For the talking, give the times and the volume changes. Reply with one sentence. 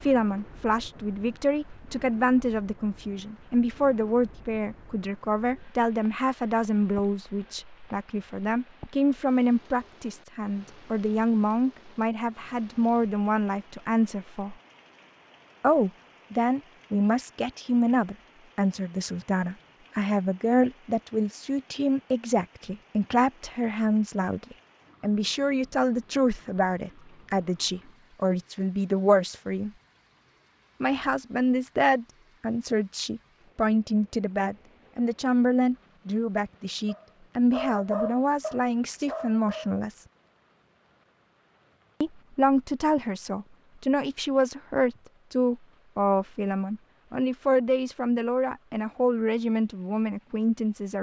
The talking can be heard from 0.0 to 14.6 s, at a steady volume; from 15.6 to 29.7 s, at a steady volume; from 30.8 to 40.0 s, at a steady volume; and from 42.0 to 50.9 s, at a steady volume.